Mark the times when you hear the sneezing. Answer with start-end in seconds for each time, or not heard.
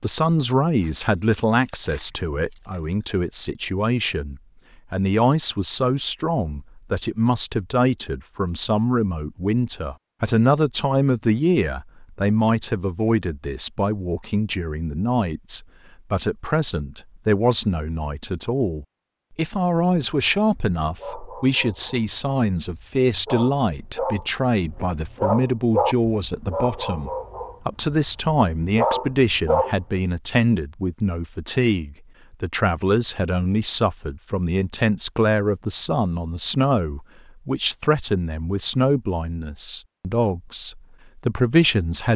not heard.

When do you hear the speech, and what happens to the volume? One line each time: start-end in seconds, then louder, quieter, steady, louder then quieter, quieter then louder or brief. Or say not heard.
0.0-42.1 steady.